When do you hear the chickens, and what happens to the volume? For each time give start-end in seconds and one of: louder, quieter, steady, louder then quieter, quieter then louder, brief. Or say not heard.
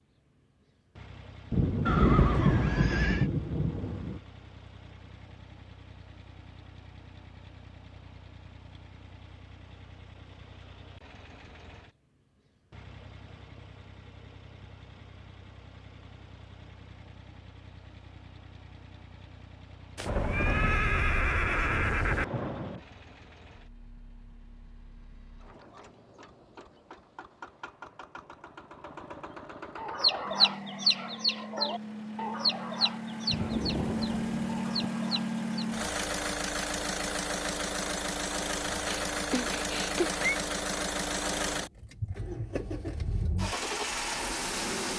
29.8-35.6 quieter.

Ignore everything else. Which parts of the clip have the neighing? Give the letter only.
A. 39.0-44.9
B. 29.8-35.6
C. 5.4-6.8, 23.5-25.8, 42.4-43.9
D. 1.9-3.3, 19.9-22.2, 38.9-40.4
D.